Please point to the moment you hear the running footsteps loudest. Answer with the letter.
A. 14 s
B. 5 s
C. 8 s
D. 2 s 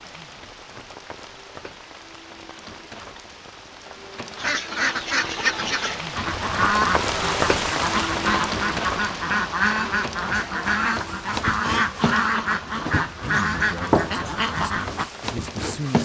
A.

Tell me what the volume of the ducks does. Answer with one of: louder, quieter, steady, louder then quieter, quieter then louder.
steady.